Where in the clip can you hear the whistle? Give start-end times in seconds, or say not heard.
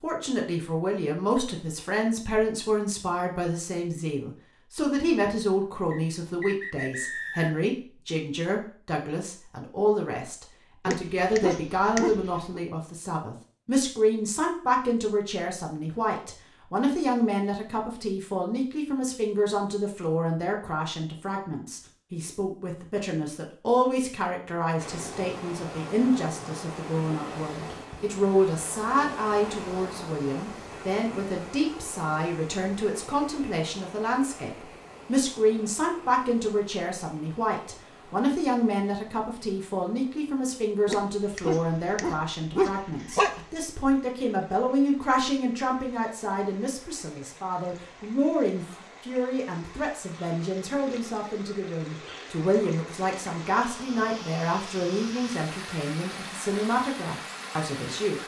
5.9-7.6.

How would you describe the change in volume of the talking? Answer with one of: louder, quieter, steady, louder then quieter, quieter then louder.
steady.